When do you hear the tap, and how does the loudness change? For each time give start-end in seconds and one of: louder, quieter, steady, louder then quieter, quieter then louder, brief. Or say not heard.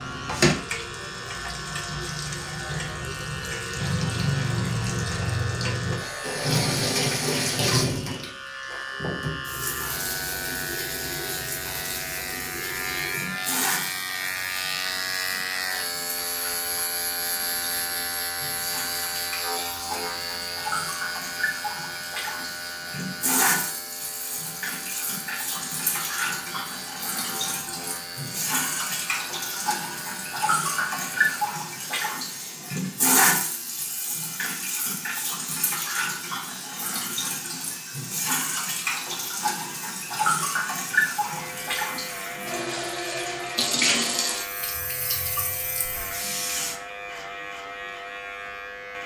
0.0-46.8 quieter then louder.